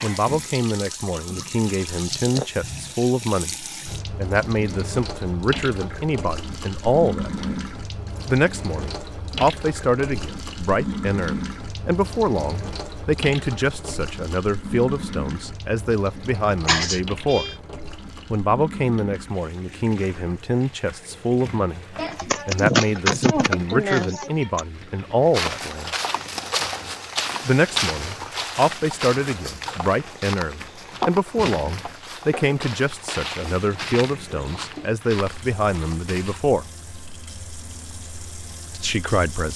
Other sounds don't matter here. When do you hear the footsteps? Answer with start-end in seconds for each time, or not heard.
25.3-36.5.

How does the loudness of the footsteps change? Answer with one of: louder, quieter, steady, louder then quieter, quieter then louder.
quieter.